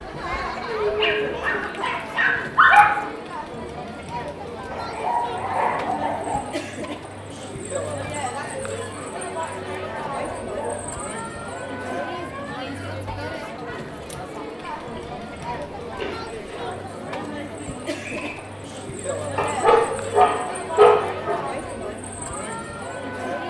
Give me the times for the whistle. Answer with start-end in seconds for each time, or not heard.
18.0-18.4.